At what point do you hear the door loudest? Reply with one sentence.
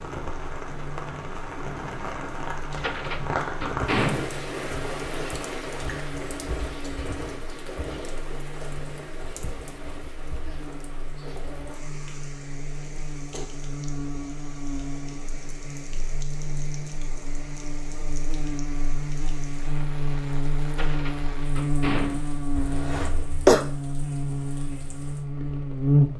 The loudest moment of the door is at 4 seconds.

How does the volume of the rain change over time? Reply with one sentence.
The volume of the rain goes down.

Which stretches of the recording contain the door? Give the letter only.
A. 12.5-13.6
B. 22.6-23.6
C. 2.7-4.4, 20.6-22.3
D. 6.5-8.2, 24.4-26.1
C.